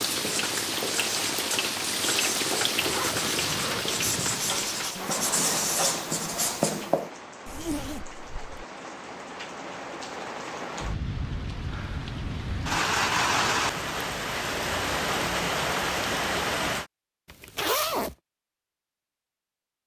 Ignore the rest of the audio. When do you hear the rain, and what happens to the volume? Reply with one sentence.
You can hear the rain from 0.0 to 16.9 s, getting quieter then louder.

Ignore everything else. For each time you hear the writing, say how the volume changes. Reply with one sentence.
You can hear the writing from 0.1 to 7.1 s, getting louder.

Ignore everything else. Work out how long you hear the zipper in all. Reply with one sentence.
You can hear the zipper for 4 seconds altogether.